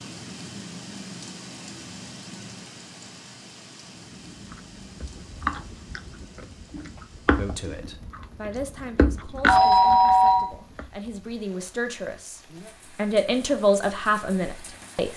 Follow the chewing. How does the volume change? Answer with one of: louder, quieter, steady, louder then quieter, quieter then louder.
quieter then louder.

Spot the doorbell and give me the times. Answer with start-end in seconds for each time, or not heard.
9.4-10.5.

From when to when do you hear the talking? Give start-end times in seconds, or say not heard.
7.3-15.1.